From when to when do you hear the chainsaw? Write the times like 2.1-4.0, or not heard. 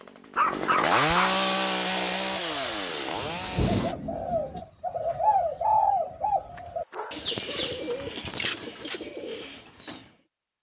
0.0-4.0.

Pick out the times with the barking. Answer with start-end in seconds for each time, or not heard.
0.3-1.4, 6.5-8.0.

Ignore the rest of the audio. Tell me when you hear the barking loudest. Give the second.
1 s.